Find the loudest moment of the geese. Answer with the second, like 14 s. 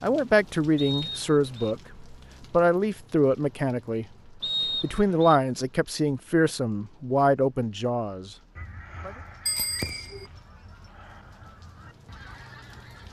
10 s.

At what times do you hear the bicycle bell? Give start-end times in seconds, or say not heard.
9.4-10.3.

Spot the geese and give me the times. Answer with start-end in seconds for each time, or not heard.
8.6-13.0.